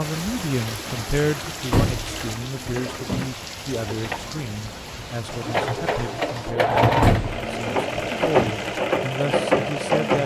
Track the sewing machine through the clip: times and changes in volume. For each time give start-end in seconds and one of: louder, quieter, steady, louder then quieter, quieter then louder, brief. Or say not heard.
0.0-10.2 louder.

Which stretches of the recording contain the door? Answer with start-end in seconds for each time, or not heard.
1.7-3.3, 7.0-8.6.